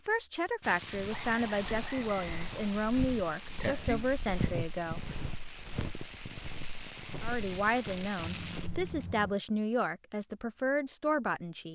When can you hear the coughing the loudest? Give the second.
4 s.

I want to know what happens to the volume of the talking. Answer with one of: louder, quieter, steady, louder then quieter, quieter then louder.
steady.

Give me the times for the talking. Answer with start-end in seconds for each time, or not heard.
0.1-5.0, 7.2-11.6.